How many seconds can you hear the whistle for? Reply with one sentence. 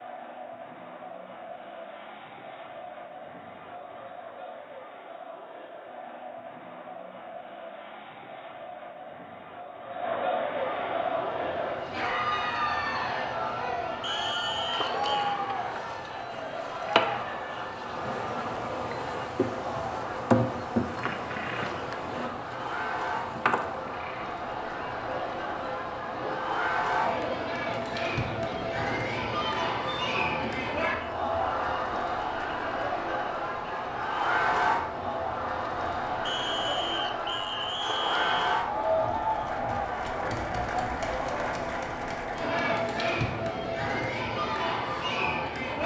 You can hear the whistle for 4 seconds altogether.